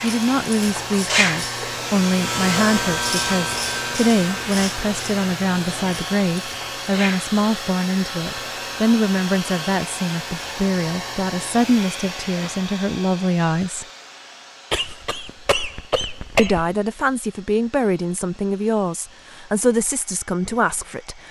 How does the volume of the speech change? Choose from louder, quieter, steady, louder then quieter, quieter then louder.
steady.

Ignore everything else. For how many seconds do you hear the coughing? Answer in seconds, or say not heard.
2 s.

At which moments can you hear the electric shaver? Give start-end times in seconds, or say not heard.
0.0-12.7.